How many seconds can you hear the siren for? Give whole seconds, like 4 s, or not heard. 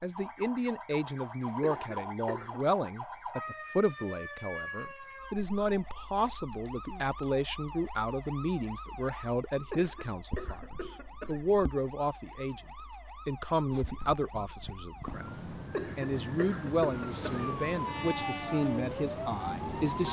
20 s.